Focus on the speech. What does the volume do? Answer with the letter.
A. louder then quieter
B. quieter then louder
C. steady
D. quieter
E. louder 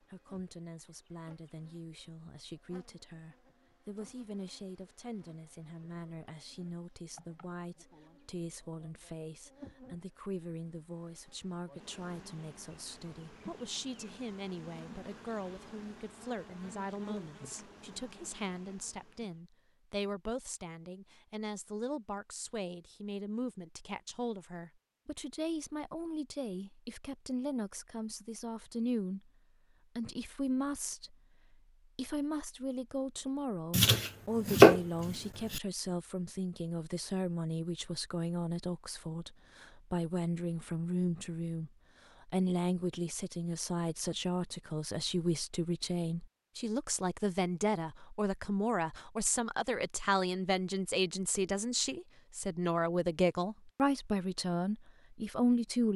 E.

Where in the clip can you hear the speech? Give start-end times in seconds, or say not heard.
0.0-29.3, 29.9-55.9.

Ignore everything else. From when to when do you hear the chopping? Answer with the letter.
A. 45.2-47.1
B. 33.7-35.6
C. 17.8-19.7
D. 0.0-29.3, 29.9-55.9
B.